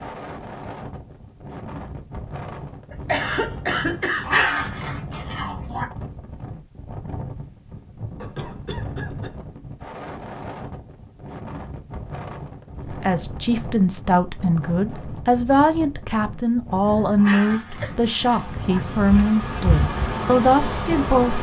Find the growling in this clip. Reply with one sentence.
You can hear the growling from 4.2 to 5.8 s and from 17.1 to 18.8 s.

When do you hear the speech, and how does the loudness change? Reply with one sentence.
The speech can be heard from 13.0 to 21.3 s, at a steady volume.